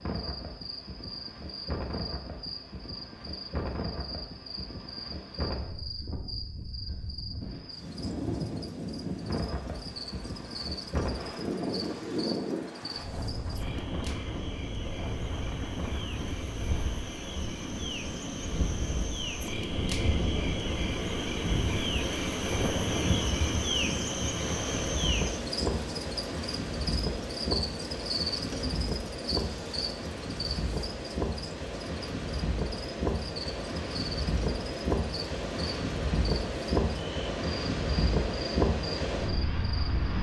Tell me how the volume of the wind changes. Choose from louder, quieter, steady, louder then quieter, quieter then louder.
louder.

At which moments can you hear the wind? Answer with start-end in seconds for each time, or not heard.
0.0-40.1.